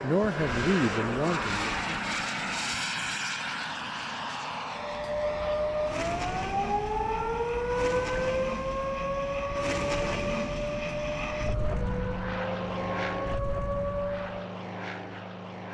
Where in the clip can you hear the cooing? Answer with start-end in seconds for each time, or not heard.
not heard.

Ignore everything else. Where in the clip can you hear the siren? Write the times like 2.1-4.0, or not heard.
4.8-14.5.